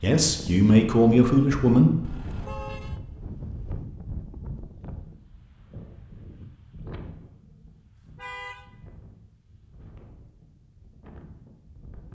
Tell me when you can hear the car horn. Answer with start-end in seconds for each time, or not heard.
2.0-3.0, 8.2-8.7.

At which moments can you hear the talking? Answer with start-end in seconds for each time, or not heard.
0.0-2.1.